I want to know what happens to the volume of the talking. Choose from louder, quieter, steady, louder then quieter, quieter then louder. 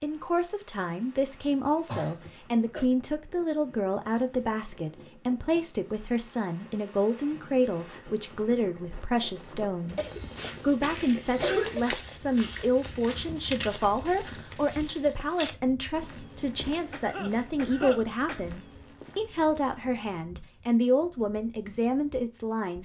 steady.